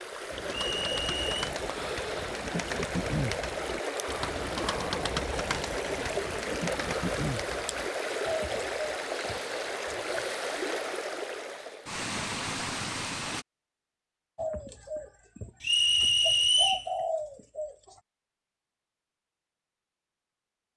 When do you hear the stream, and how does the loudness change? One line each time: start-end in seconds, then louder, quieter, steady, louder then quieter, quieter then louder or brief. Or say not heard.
0.0-13.4 steady.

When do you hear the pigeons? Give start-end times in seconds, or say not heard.
0.3-10.3, 14.3-18.0.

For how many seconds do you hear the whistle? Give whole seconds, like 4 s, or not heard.
2 s.